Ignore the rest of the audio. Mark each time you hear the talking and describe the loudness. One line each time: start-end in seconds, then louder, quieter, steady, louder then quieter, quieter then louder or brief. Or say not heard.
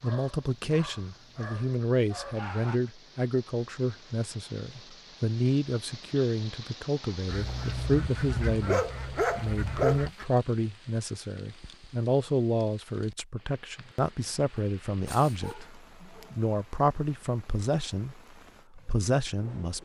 0.0-19.8 steady.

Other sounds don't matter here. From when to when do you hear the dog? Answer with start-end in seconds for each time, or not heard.
0.0-2.8, 7.3-10.1, 14.6-16.3.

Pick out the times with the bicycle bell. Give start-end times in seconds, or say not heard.
not heard.